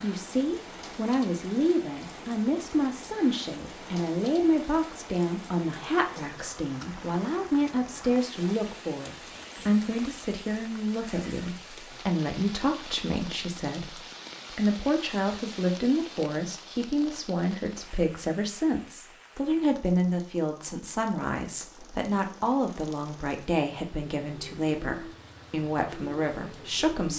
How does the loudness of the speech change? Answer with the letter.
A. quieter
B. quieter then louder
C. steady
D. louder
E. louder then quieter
C.